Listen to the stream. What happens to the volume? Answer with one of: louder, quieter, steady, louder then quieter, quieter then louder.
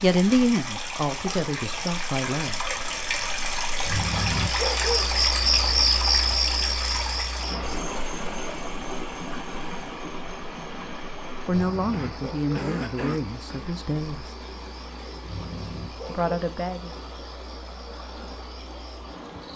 quieter.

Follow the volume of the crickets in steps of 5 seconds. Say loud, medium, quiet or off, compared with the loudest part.
medium, loud, quiet, quiet.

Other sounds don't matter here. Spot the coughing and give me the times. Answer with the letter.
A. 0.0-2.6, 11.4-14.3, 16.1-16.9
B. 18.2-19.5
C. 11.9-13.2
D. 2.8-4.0
C.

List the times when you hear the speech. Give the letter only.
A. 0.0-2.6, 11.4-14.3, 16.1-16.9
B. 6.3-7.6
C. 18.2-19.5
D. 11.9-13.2
A.